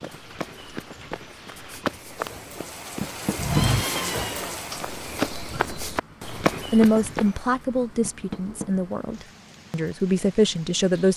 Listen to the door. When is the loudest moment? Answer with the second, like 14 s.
3 s.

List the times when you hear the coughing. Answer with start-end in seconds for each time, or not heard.
not heard.